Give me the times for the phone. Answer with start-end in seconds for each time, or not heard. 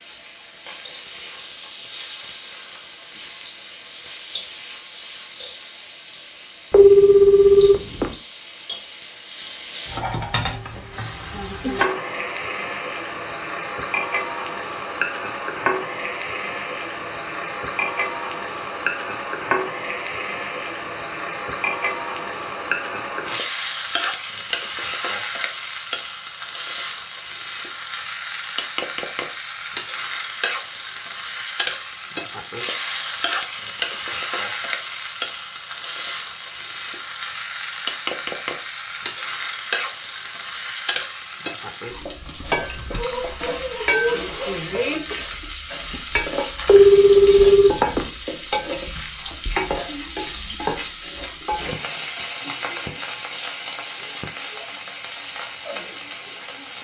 6.7-8.2, 46.6-48.1.